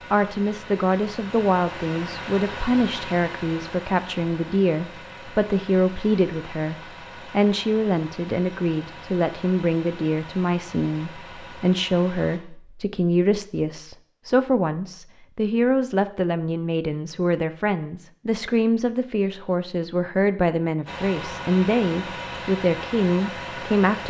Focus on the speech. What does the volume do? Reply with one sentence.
The loudness of the speech stays about the same.